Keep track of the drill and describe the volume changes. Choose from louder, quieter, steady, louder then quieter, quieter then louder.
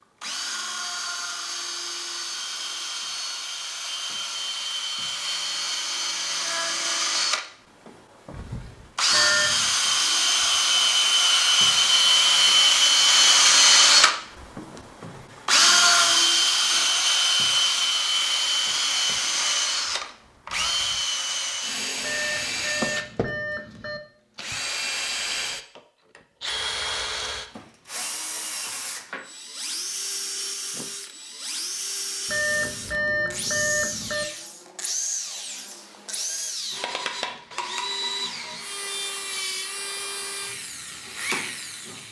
louder then quieter.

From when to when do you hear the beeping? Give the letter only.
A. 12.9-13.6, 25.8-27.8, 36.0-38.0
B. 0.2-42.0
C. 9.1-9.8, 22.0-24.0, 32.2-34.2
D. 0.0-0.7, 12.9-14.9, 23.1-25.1
C.